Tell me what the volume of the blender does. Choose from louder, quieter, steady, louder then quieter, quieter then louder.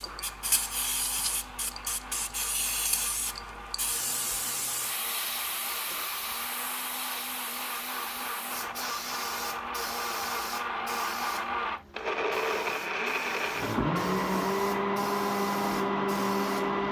louder.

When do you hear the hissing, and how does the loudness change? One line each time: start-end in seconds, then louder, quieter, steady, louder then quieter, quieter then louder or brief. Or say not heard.
0.0-16.7 quieter.